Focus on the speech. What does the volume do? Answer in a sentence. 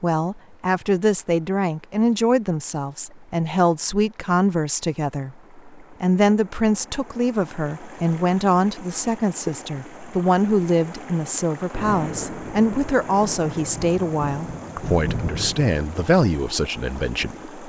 The volume of the speech stays about the same.